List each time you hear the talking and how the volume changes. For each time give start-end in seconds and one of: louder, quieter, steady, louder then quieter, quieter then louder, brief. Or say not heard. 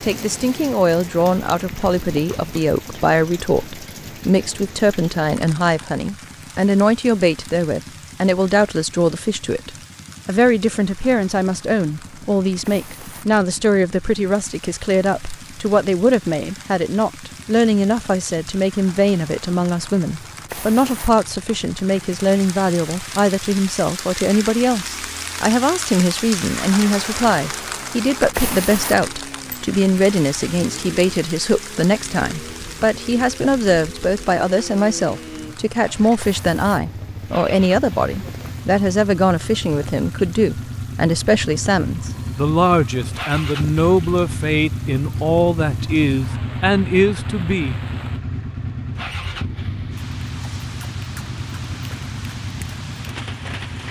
0.0-47.8 steady.